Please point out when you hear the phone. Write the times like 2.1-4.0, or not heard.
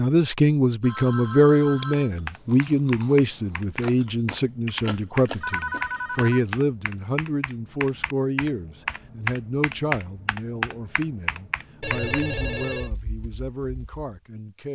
0.8-2.1, 5.4-6.4, 11.8-12.9.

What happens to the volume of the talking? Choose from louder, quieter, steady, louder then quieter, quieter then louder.
quieter.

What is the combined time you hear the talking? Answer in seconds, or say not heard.
15 s.